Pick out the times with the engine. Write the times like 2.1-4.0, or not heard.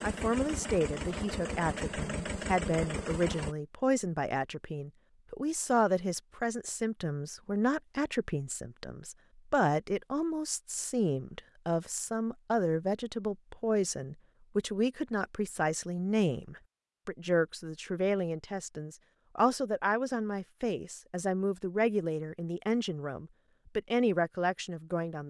0.0-3.5.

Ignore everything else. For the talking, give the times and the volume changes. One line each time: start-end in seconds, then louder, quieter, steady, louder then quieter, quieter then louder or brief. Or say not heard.
0.0-25.2 steady.